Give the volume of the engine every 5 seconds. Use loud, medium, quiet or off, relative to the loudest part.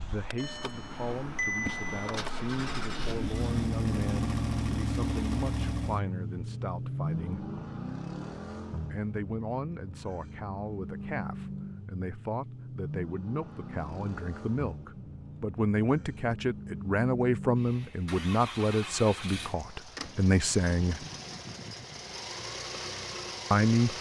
loud, loud, medium, medium, medium.